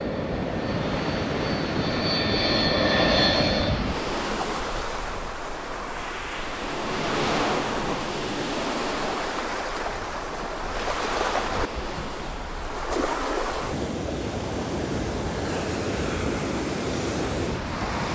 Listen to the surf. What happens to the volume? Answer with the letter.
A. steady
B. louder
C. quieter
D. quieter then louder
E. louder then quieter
A.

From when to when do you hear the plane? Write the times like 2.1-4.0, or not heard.
0.0-3.8.